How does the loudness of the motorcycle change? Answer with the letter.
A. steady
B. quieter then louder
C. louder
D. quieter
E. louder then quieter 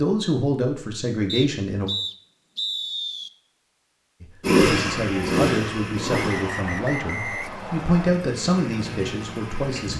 B.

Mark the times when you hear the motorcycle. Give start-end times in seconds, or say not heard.
4.4-9.9.